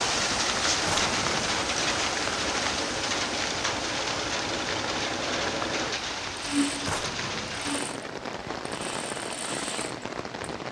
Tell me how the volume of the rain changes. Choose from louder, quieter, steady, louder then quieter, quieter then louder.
quieter.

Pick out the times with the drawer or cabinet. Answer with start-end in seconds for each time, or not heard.
0.8-1.4, 6.8-7.7.